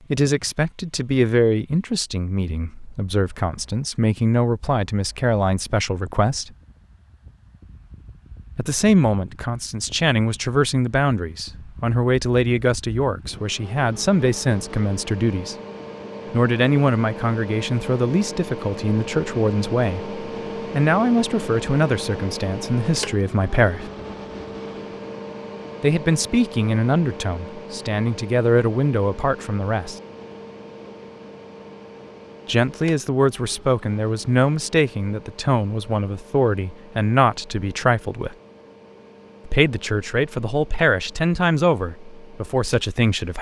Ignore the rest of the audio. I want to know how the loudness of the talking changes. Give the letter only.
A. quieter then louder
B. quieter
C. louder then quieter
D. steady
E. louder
D.